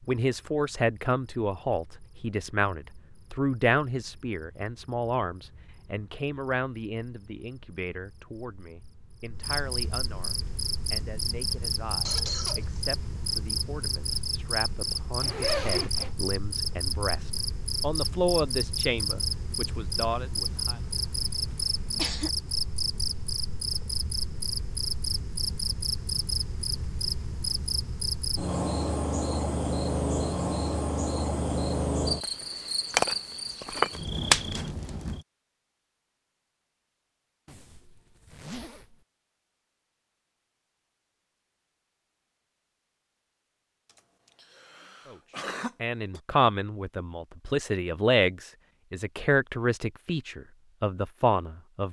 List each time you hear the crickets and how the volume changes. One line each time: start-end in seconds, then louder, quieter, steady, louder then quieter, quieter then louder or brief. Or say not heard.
0.2-35.2 louder.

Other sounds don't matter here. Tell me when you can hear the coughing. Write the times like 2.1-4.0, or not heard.
12.1-12.8, 20.4-22.3, 44.0-46.2.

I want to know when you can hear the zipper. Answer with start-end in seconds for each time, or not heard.
15.2-16.1, 37.5-39.0.